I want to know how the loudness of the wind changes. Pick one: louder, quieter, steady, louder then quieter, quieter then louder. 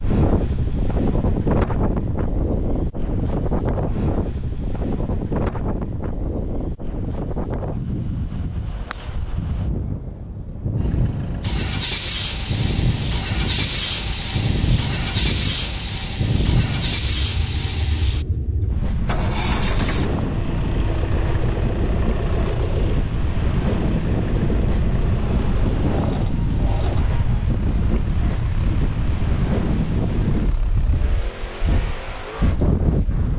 steady.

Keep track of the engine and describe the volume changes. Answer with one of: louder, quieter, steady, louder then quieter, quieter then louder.
quieter.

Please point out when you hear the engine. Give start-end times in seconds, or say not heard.
10.8-33.3.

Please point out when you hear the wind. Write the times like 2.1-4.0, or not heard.
0.0-33.3.